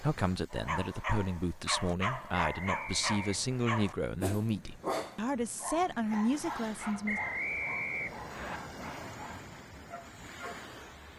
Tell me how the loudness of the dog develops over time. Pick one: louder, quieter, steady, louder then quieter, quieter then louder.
quieter.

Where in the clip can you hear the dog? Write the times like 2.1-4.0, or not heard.
0.5-10.7.